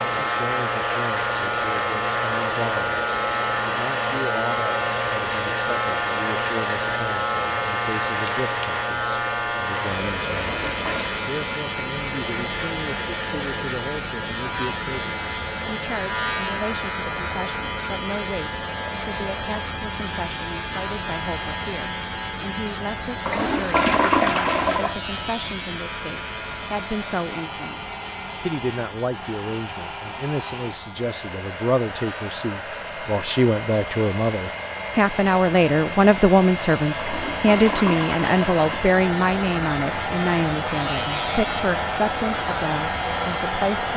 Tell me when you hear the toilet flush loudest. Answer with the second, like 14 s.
24 s.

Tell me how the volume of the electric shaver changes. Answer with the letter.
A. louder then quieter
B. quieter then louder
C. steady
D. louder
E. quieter
B.